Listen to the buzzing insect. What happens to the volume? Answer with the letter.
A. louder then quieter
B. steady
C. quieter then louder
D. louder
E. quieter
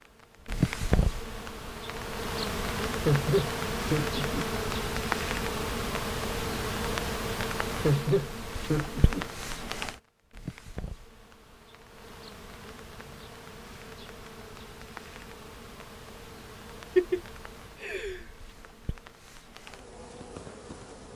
E.